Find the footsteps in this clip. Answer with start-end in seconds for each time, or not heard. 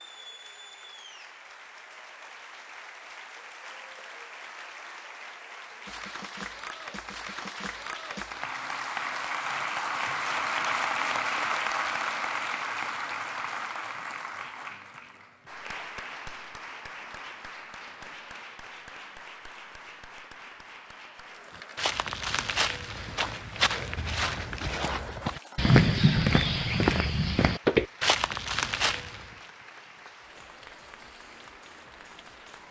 21.8-29.2.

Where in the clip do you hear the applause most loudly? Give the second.
11 s.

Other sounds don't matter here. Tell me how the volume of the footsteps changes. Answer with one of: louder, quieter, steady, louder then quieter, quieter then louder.
louder.